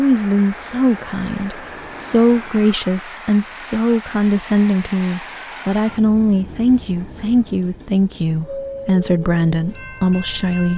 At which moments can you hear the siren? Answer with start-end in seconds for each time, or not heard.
not heard.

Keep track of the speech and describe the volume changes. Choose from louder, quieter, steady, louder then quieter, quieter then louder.
steady.